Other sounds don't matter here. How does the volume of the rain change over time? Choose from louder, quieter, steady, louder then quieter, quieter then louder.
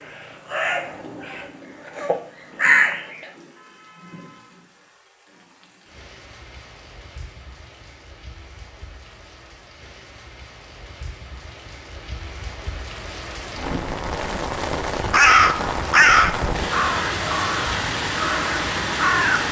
louder.